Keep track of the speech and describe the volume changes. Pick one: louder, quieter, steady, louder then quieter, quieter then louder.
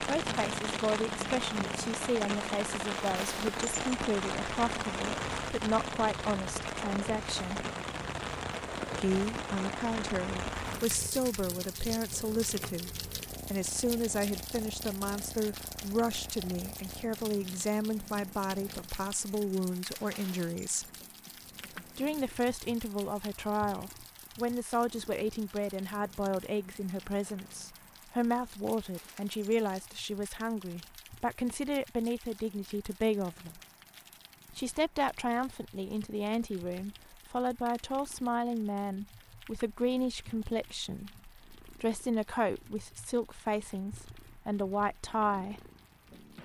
steady.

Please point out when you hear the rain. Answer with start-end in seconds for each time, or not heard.
0.0-46.4.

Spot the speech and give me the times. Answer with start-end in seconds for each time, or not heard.
0.0-7.7, 8.9-12.9, 13.5-20.9, 21.9-33.6, 34.5-45.6.